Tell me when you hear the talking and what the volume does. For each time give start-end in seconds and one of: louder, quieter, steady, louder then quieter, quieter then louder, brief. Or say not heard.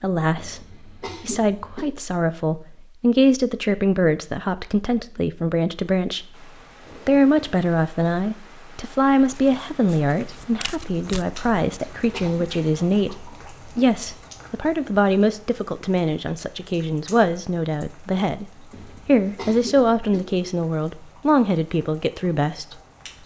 0.0-23.2 steady.